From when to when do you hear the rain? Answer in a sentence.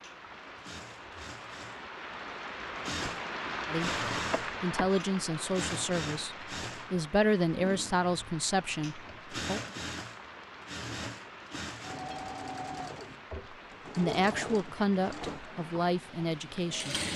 You can hear the rain from 0.0 to 17.0 s.